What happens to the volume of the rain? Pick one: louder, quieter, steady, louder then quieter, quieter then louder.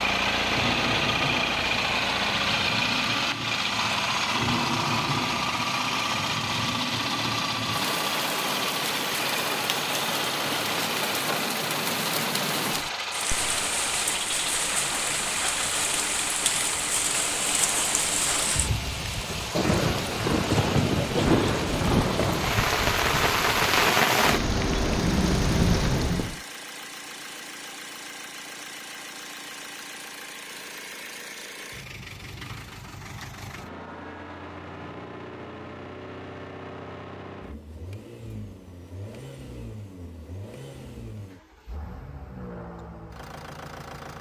louder.